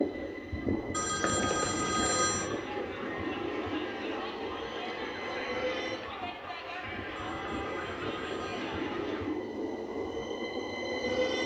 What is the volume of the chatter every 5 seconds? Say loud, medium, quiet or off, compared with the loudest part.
loud, loud, off.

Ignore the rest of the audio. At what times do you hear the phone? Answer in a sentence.
The phone can be heard from 0.9 to 2.5 s and from 7.2 to 8.9 s.